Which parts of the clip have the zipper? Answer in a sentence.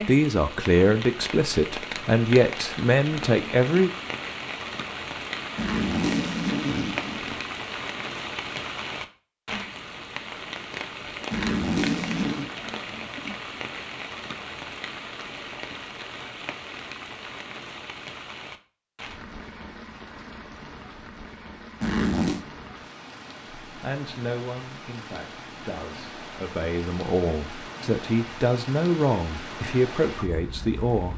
The zipper can be heard from 5.5 to 7.4 s, from 11.3 to 12.5 s and from 21.8 to 22.4 s.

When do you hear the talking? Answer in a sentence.
You can hear the talking from 0.1 to 3.9 s and from 23.7 to 31.1 s.